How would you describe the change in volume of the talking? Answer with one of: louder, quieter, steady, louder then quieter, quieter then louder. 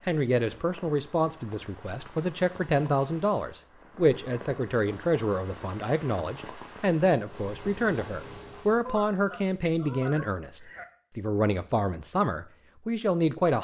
steady.